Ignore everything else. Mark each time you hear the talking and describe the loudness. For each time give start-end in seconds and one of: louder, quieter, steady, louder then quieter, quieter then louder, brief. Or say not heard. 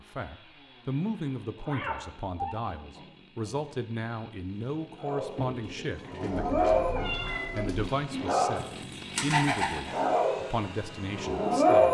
0.0-11.8 steady.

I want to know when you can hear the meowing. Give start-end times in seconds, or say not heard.
1.6-3.5, 6.3-7.8.